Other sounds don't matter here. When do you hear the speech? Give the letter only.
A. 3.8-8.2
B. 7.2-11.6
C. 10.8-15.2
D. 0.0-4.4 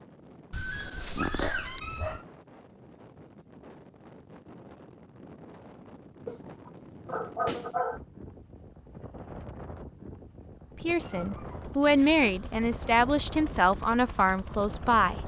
C.